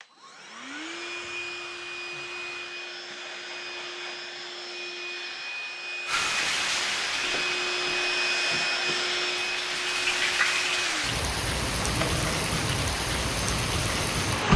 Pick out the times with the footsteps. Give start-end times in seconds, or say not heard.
not heard.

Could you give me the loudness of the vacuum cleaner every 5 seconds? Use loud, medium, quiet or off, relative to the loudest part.
medium, loud, loud.